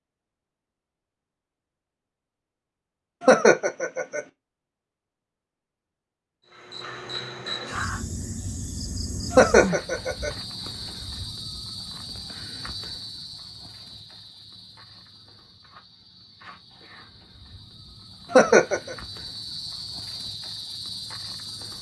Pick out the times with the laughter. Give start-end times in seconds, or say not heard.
3.2-4.2, 9.3-10.3, 18.3-18.9.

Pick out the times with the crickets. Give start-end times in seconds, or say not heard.
6.5-21.7.